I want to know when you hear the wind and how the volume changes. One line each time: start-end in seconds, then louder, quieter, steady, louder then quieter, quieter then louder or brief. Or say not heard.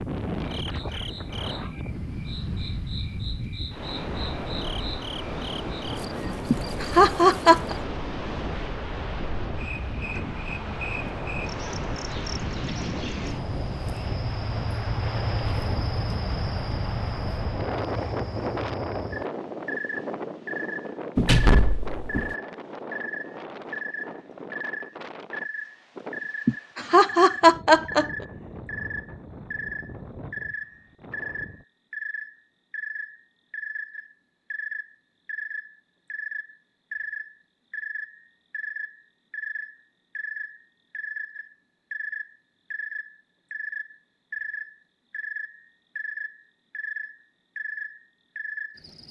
0.0-31.6 quieter.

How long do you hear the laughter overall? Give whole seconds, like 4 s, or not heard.
3 s.